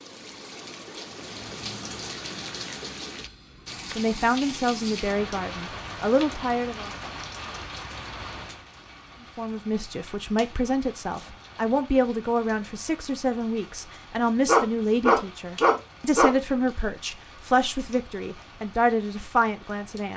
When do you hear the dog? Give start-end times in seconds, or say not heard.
14.4-16.4.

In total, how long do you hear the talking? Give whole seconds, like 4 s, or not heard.
14 s.